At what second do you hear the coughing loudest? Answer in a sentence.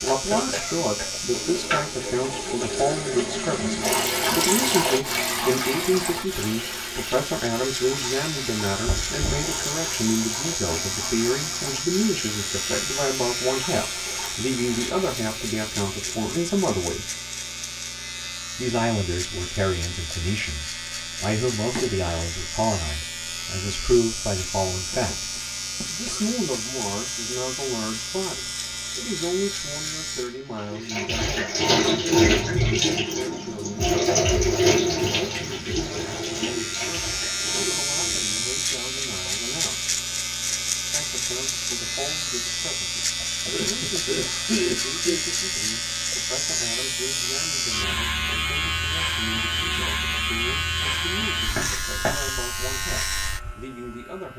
The volume of the coughing peaks at 45 seconds.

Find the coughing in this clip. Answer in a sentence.
You can hear the coughing from 0.5 to 1.2 s, from 24.9 to 26.2 s and from 43.2 to 45.2 s.